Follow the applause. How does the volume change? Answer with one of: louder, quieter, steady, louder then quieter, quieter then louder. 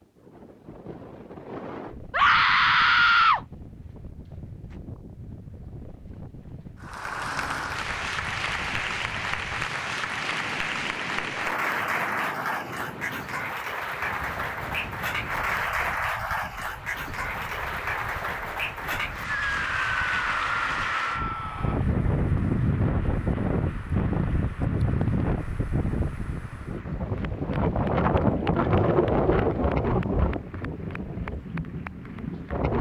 quieter.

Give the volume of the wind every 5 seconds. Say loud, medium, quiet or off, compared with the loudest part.
quiet, quiet, quiet, quiet, loud, loud, medium.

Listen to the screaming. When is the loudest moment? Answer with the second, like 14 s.
3 s.